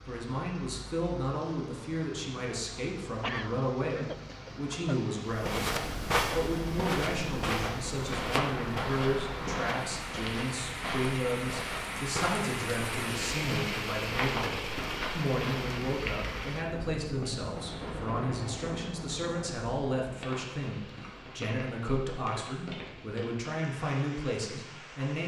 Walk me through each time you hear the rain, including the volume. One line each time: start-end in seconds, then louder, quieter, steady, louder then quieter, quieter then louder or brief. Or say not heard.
0.0-25.2 louder then quieter.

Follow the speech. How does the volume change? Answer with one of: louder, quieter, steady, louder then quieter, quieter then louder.
steady.